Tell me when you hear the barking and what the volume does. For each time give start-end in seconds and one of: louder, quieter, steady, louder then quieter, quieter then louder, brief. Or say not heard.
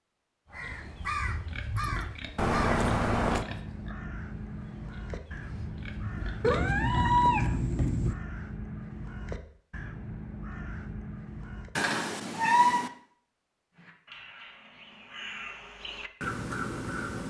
not heard.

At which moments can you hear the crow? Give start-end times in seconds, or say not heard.
0.5-11.7, 13.7-17.2.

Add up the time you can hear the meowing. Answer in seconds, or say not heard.
4 s.